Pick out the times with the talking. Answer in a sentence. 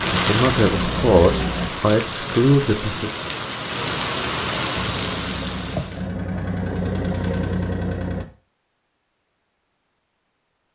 The talking can be heard from 0.1 to 3.1 s.